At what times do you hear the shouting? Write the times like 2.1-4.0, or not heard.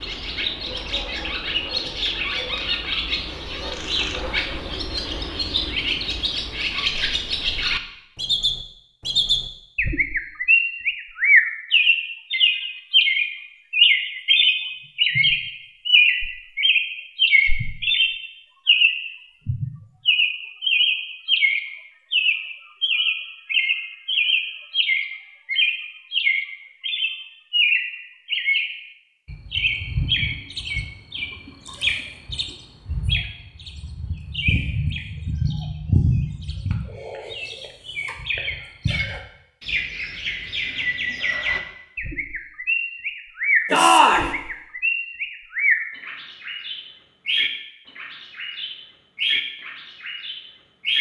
43.7-44.3.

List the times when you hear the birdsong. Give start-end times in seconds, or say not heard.
0.0-50.9.